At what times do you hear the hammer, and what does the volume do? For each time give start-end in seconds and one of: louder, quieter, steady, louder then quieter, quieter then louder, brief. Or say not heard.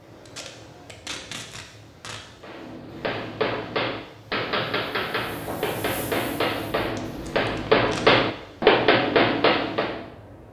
2.4-10.1 louder.